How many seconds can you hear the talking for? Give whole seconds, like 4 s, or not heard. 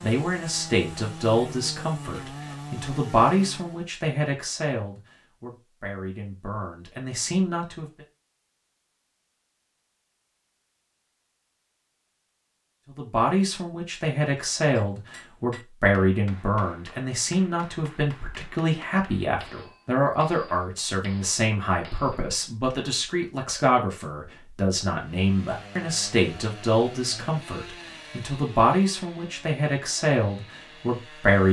26 s.